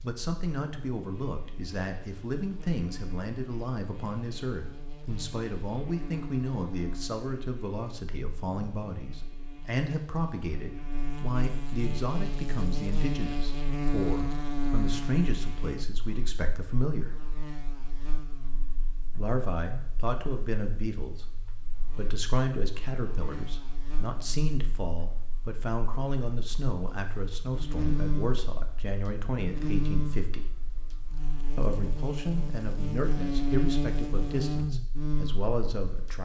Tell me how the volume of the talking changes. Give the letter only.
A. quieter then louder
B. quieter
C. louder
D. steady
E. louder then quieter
D.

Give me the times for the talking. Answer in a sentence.
You can hear the talking from 0.0 to 17.1 s, from 19.1 to 30.4 s and from 31.6 to 36.2 s.